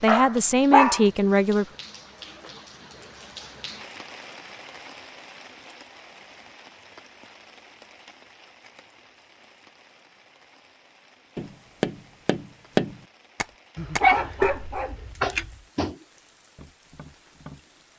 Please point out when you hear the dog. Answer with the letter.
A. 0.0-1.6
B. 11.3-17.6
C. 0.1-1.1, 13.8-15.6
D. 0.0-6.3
C.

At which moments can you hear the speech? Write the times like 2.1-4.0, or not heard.
0.0-1.6.